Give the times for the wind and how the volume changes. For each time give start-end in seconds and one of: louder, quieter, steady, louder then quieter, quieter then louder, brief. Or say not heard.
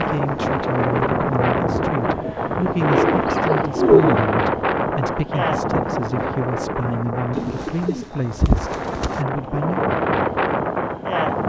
0.0-11.4 quieter then louder.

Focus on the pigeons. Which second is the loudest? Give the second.
4 s.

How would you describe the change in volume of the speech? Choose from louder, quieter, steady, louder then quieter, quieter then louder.
steady.